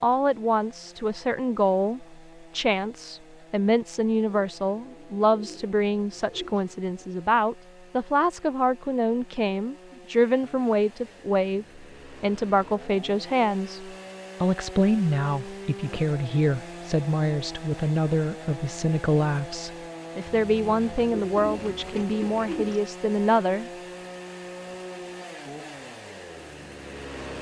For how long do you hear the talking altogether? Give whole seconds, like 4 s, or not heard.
24 s.